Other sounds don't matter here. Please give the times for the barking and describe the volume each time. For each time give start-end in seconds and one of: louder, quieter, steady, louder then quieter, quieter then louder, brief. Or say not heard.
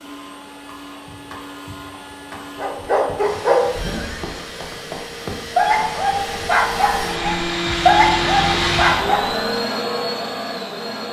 2.5-9.3 quieter then louder.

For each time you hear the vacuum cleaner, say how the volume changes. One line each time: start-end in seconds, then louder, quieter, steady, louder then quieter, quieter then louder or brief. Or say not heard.
0.0-11.0 louder.